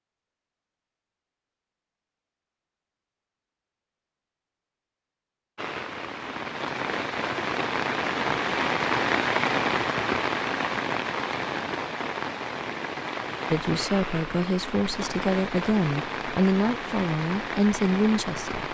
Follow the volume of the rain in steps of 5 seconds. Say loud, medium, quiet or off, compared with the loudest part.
off, loud, loud, medium.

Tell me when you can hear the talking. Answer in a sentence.
You can hear the talking from 13.5 to 18.6 s.